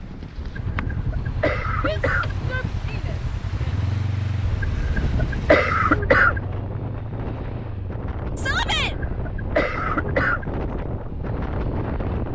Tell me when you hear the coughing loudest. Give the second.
6 s.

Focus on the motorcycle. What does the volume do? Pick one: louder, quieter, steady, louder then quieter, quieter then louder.
quieter.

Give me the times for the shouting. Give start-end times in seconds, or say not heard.
1.8-3.8, 8.3-8.9.